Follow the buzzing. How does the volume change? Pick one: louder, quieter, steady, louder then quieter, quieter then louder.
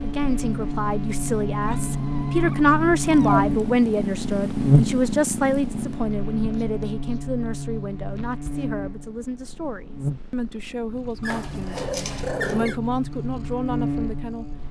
louder then quieter.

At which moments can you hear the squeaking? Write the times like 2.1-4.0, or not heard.
1.6-3.5, 11.2-12.8.